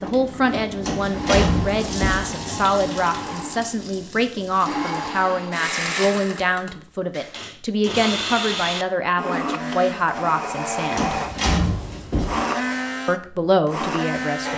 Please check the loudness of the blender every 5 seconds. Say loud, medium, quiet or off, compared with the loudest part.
medium, loud, loud.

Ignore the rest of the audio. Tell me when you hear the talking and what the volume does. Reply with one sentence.
You can hear the talking from 0.0 to 11.2 s, at a steady volume; and briefly from 13.1 to 14.5 s.